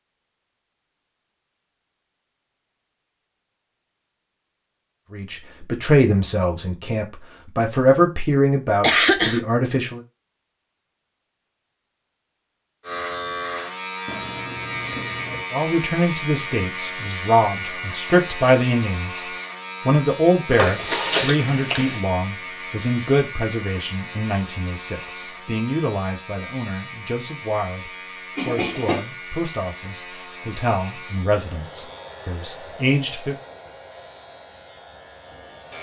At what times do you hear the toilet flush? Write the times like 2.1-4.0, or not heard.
14.1-15.4.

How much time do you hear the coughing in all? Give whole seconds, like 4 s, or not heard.
3 s.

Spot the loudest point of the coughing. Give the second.
9 s.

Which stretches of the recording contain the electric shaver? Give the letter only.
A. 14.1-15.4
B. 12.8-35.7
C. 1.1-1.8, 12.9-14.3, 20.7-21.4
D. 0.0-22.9
B.